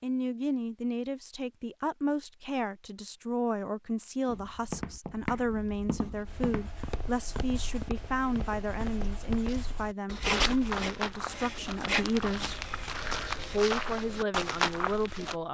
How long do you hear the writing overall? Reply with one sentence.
The writing can be heard for 7 seconds in total.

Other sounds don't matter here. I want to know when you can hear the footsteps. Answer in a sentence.
You can hear the footsteps from 4.2 to 15.3 s.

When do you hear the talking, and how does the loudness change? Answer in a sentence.
The talking can be heard from 0.0 to 12.6 s, at a steady volume; and briefly from 13.5 to 15.4 s.